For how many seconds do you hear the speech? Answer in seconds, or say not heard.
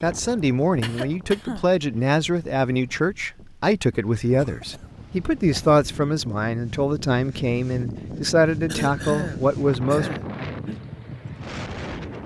10 s.